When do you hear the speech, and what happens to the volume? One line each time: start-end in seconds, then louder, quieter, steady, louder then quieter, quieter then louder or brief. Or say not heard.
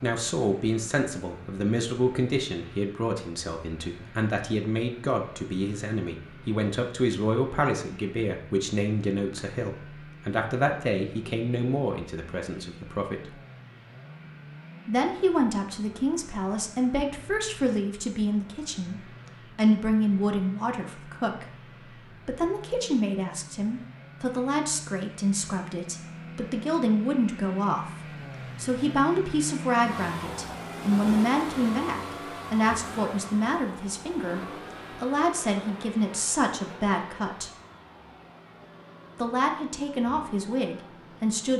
0.0-13.3 steady
14.8-37.5 steady
39.1-41.5 brief.